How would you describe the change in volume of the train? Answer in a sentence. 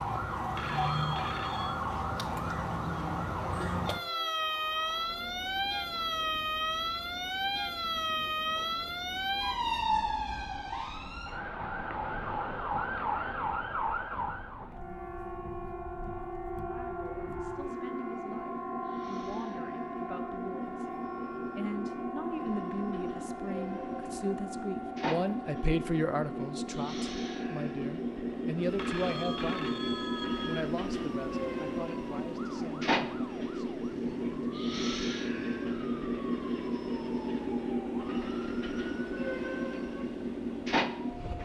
The volume of the train goes up.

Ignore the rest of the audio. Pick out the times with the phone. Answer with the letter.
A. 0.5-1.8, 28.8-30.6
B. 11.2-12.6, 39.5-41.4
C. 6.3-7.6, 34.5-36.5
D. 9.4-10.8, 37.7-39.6
A.